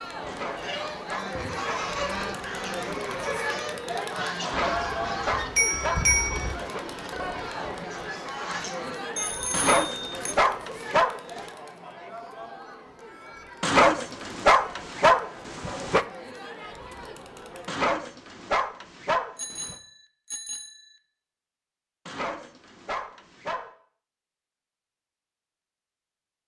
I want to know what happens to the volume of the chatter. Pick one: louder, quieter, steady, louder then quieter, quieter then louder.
quieter.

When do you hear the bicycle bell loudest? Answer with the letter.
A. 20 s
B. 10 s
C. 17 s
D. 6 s
D.